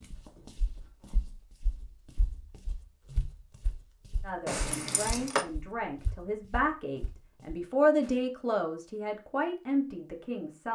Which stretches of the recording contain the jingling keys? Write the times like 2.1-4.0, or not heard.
4.5-5.5.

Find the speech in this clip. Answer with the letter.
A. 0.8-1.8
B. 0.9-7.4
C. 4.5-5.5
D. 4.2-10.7
D.